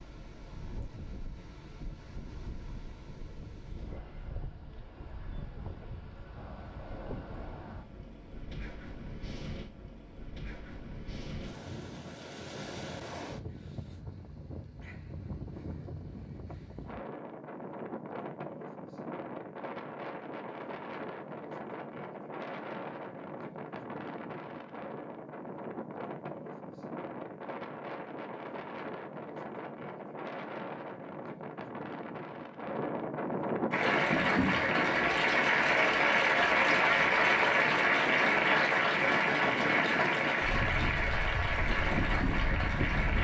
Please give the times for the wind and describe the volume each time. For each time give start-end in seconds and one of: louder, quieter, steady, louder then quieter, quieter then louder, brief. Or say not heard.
0.0-43.2 louder.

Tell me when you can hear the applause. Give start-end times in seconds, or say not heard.
33.7-43.2.